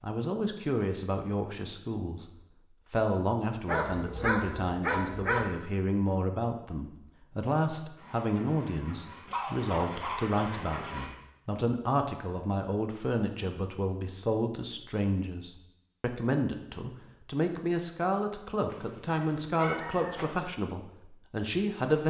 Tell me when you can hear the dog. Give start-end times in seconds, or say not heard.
3.6-5.5, 9.2-10.9, 18.6-20.4.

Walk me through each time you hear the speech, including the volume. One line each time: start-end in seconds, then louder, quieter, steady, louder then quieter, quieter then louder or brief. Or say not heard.
0.0-2.2 brief
2.9-22.0 steady.